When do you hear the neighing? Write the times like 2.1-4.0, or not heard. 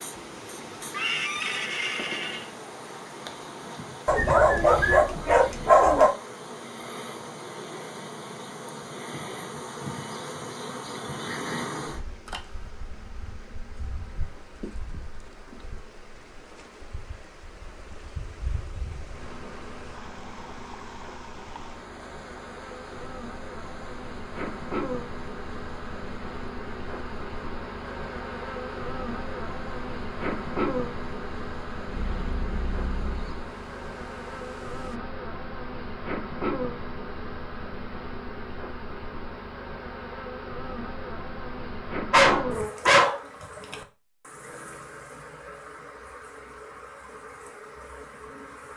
0.9-2.5, 31.9-33.4.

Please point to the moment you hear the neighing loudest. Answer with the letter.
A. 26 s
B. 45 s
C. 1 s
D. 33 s
C.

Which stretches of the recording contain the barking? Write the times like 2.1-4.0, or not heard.
4.0-6.1, 42.1-43.2.